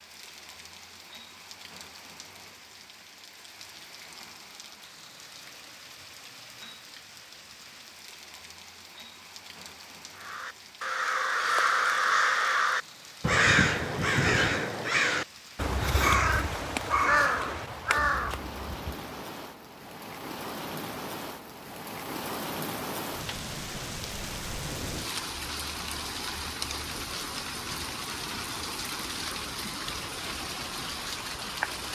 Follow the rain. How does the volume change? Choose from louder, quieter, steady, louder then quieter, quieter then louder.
louder.